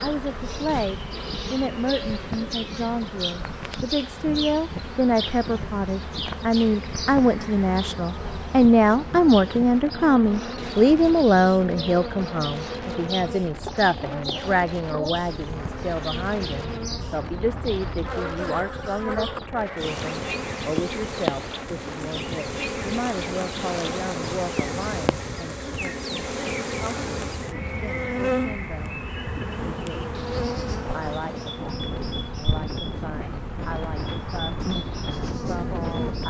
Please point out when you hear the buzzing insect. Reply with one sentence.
You can hear the buzzing insect from 0.0 to 36.2 s.